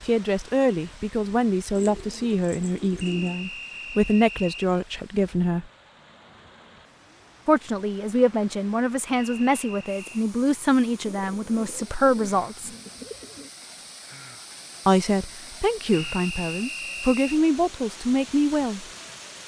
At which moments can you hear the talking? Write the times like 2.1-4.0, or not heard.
0.0-5.7, 7.5-12.7, 14.8-18.9.